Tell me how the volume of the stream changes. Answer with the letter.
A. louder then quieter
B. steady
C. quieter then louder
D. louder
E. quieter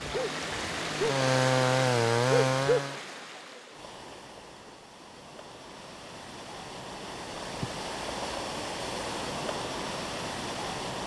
C.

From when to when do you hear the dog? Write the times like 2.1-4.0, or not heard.
0.0-1.1, 2.2-2.8.